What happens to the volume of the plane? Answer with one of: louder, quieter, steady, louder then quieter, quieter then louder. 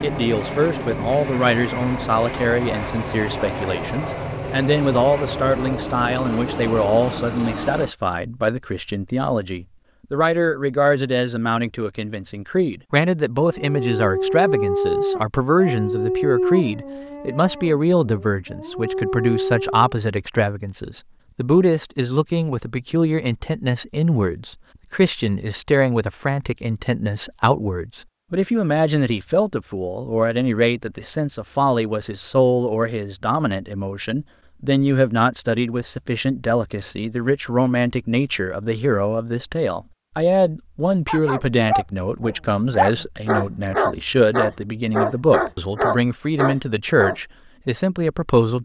steady.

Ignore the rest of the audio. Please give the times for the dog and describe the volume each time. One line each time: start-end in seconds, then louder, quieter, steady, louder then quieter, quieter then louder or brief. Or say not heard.
13.5-19.9 quieter then louder
41.0-47.1 steady.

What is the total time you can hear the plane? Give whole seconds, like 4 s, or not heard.
8 s.